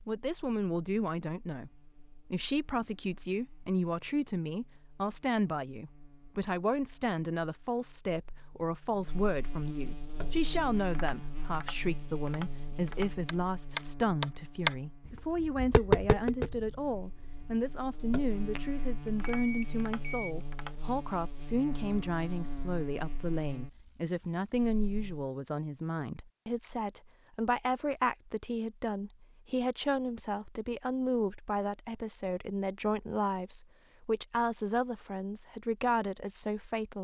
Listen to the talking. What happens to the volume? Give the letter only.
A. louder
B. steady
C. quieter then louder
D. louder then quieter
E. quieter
B.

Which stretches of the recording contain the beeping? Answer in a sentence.
The beeping can be heard from 19.2 to 20.4 s.